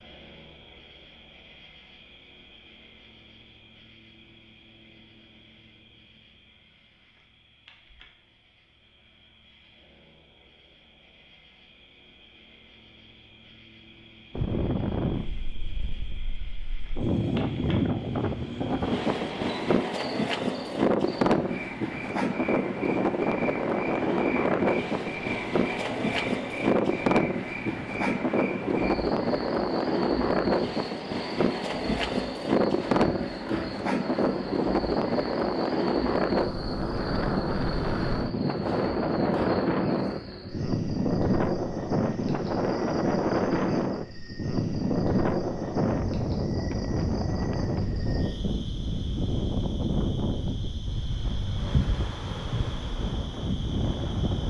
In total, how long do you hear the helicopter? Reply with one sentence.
The helicopter can't be heard in this clip.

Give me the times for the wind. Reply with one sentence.
You can hear the wind from 14.3 to 54.4 s.